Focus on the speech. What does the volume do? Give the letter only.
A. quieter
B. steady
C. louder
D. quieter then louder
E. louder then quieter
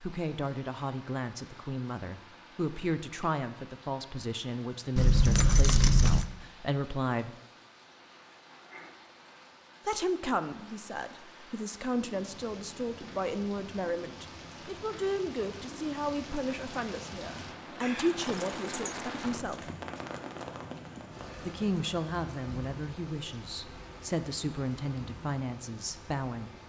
B.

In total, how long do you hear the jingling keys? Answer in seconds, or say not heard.
3 s.